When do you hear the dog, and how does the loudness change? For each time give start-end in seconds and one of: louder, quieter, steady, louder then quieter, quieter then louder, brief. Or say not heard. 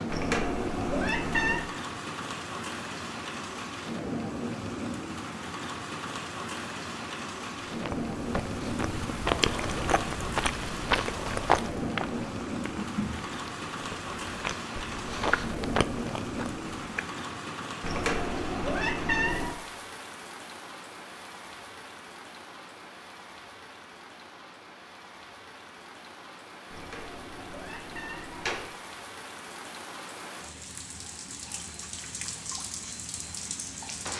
not heard.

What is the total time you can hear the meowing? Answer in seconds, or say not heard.
5 s.